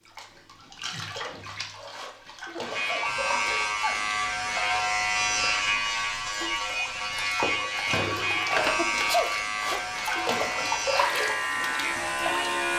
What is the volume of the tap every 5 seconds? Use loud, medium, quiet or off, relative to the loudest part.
medium, loud, loud.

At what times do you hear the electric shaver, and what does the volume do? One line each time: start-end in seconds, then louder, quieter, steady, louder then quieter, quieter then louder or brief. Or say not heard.
2.6-12.7 steady.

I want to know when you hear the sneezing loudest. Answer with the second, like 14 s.
9 s.